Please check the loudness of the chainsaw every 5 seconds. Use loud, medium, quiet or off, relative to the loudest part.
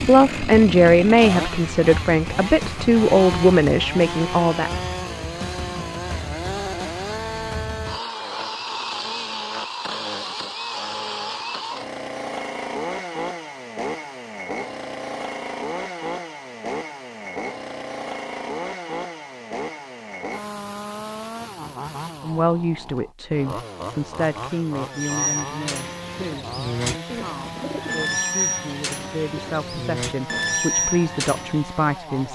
loud, loud, loud, loud, medium, medium, medium.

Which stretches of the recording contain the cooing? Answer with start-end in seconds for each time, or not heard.
24.9-31.6.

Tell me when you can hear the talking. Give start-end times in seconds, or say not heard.
0.0-4.7, 22.2-32.2.